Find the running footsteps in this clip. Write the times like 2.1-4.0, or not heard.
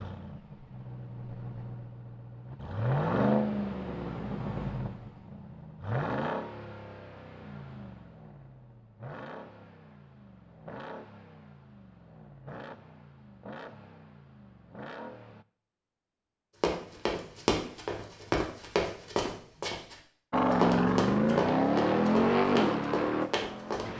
16.6-23.9.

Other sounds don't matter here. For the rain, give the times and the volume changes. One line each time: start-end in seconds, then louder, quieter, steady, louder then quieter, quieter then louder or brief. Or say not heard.
not heard.